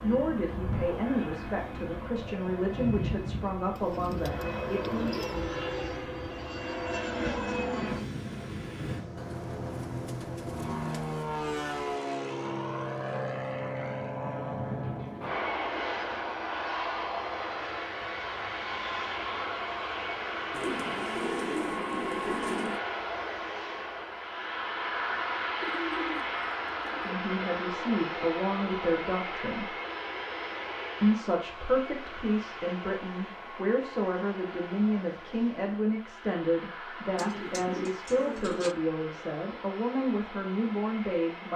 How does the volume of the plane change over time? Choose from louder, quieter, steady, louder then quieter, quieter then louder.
quieter.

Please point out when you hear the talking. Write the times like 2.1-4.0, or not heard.
0.0-5.2, 27.1-29.7, 31.0-41.5.